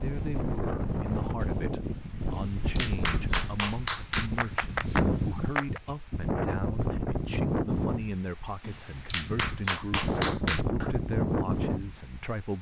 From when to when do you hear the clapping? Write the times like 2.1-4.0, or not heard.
2.3-5.8, 8.6-10.9.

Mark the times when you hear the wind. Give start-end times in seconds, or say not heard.
0.0-12.5.